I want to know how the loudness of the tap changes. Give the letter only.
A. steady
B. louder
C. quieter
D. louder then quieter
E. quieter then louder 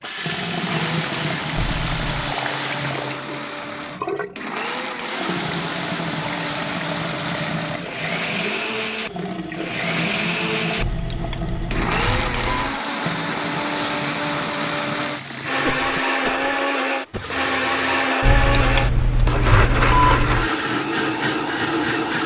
C.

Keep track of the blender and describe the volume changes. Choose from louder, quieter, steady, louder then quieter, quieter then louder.
louder.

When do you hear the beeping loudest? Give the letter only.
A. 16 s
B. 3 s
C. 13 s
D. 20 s
D.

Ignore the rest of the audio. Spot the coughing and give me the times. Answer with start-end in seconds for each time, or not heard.
15.6-17.4.